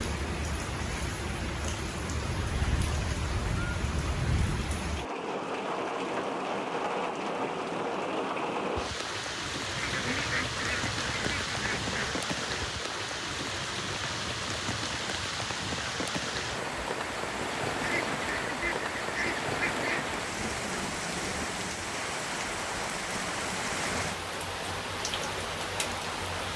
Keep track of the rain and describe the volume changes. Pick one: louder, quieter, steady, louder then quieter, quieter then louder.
steady.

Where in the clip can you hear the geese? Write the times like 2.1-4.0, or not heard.
2.3-4.7, 9.8-12.2, 17.8-20.1.